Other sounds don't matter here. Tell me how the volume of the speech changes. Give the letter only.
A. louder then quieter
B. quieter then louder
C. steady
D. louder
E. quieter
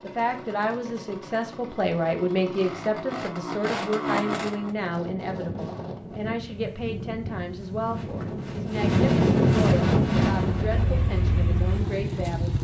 E.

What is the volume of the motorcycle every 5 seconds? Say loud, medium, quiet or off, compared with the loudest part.
loud, off, loud.